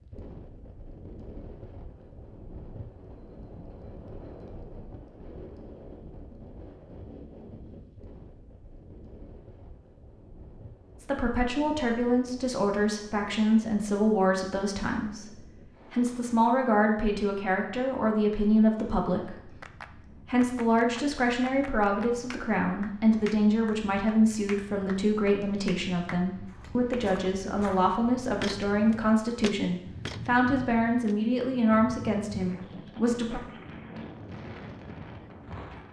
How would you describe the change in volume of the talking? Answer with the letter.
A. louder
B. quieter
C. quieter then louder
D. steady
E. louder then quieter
D.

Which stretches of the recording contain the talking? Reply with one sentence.
You can hear the talking from 11.0 to 33.4 s.